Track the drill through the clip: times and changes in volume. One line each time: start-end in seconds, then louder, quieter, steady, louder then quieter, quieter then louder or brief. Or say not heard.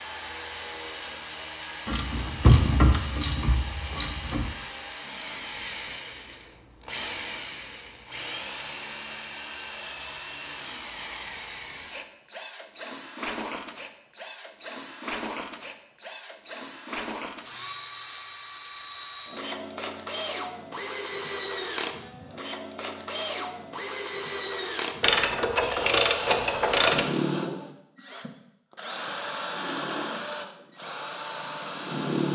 0.0-32.3 steady.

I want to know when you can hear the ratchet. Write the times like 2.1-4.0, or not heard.
1.9-4.5, 25.0-27.1.